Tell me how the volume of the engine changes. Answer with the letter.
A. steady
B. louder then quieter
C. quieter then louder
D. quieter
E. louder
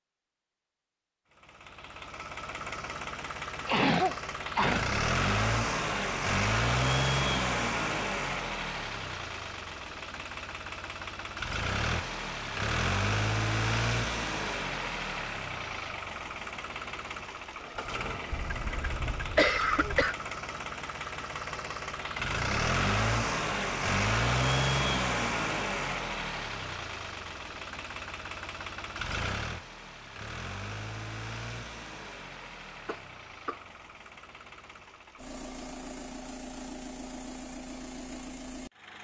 D.